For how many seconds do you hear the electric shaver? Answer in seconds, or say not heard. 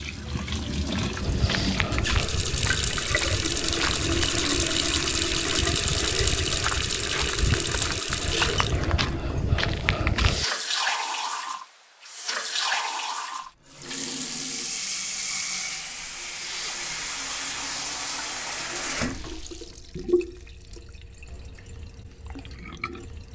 not heard.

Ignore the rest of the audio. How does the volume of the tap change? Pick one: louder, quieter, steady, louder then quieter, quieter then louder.
quieter.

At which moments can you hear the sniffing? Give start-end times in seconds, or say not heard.
1.3-1.9, 10.2-10.7, 16.3-16.9.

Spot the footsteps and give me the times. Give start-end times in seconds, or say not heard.
1.2-10.4.